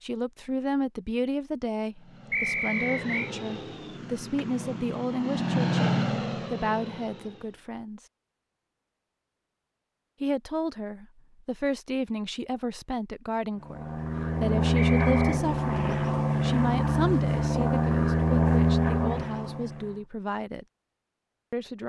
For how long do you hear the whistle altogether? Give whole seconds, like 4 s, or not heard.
2 s.